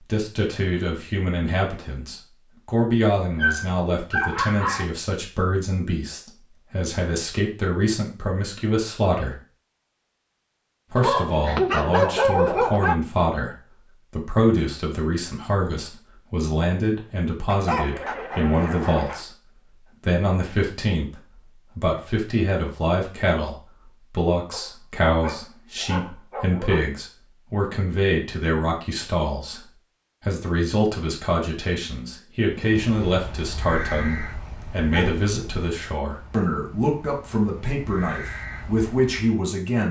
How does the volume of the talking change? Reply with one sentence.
The volume of the talking stays about the same.